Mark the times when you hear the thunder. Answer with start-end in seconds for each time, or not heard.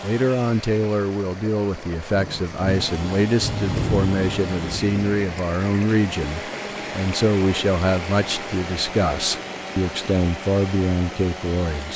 2.1-5.2.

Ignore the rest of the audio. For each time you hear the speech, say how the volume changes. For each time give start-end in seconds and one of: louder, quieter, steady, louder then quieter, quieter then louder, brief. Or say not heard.
0.0-11.9 steady.